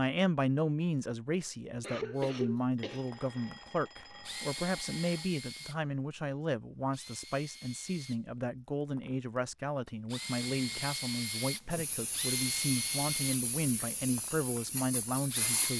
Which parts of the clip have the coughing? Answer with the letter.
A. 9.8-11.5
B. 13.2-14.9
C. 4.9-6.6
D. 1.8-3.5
D.